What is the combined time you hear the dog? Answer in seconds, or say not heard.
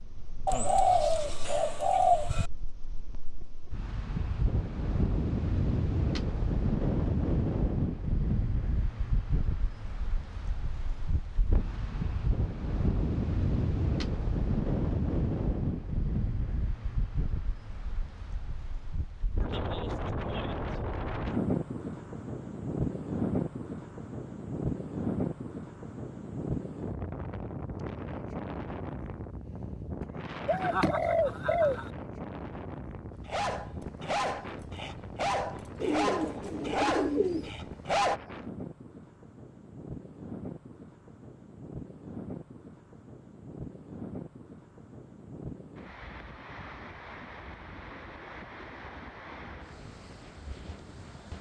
5 s.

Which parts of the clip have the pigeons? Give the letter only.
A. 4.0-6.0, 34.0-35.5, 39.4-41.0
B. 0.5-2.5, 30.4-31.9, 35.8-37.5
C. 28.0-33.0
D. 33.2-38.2
B.